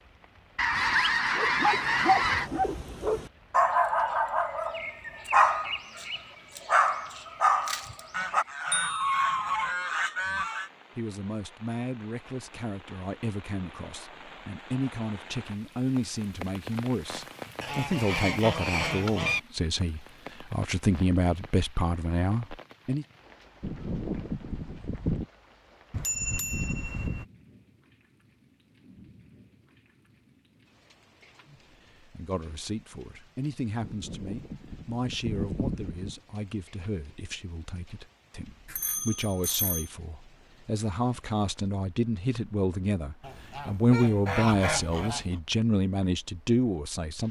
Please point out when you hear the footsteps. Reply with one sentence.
The footsteps can't be heard in this clip.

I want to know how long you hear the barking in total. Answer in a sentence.
The barking can be heard for 8 seconds in total.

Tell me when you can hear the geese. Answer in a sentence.
The geese can be heard from 0.6 to 2.5 s, from 8.1 to 10.7 s, from 17.6 to 19.4 s, from 23.6 to 25.2 s, from 33.8 to 36.1 s and from 43.2 to 45.4 s.